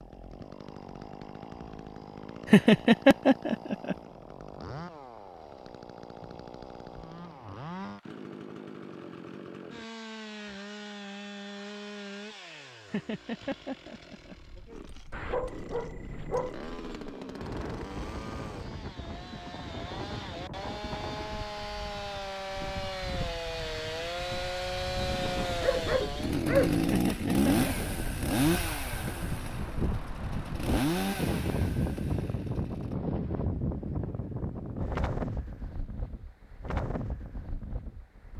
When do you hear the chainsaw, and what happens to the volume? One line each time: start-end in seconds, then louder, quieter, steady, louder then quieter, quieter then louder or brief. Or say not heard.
0.0-33.0 louder.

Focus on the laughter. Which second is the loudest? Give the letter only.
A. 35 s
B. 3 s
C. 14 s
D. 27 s
B.